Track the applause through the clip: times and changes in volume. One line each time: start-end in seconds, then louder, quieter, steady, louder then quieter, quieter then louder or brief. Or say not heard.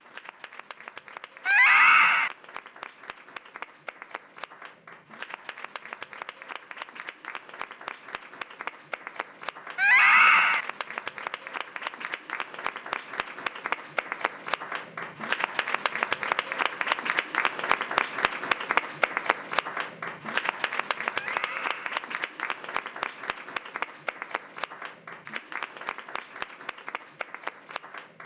0.0-28.2 louder then quieter.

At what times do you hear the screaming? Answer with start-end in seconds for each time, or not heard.
1.4-2.3, 9.8-10.7, 21.2-22.0.